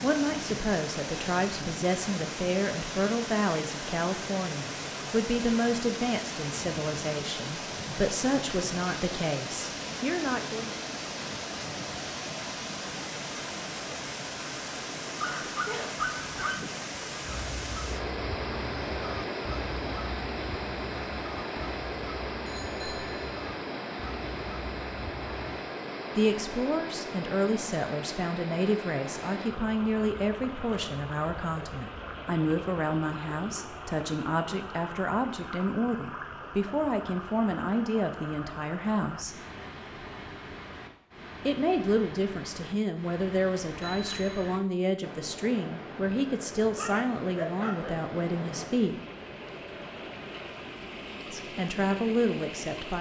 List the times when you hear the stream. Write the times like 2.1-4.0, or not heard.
0.0-52.9.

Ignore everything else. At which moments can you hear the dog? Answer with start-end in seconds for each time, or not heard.
15.2-16.6, 46.6-48.0.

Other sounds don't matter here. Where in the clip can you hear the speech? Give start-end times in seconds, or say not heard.
0.0-10.7, 26.1-39.4, 41.5-49.0, 51.3-52.9.